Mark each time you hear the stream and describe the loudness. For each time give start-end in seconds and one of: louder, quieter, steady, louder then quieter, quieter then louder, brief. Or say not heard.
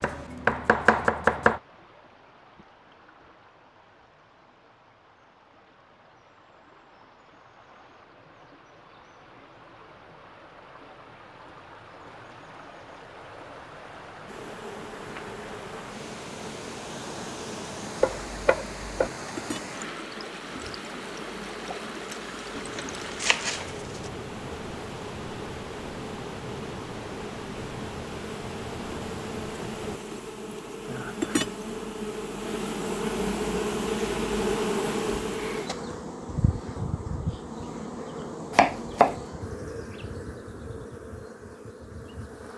0.1-30.0 louder.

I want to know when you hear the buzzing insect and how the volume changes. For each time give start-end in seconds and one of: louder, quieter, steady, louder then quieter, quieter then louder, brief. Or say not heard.
14.2-42.5 louder then quieter.